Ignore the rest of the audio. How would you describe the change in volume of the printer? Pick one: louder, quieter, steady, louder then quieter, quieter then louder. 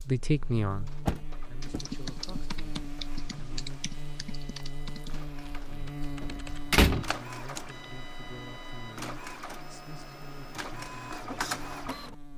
louder.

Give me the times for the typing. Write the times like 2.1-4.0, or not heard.
1.6-7.8.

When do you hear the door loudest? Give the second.
7 s.